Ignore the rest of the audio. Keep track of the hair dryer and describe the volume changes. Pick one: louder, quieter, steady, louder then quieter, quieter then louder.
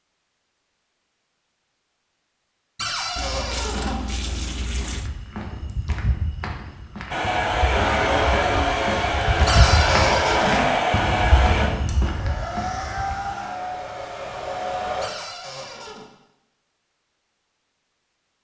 quieter.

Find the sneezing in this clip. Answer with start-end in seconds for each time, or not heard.
not heard.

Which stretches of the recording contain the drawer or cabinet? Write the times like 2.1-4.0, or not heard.
2.8-4.0, 9.4-10.7, 15.0-16.1.